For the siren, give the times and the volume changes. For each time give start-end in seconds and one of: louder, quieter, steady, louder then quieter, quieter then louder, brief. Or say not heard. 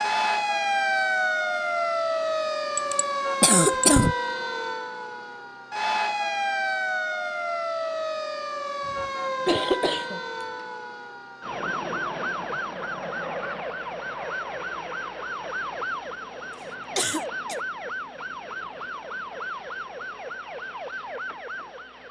0.0-22.0 quieter.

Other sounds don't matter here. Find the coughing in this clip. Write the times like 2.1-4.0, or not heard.
2.8-4.2, 8.8-10.7, 16.9-17.6.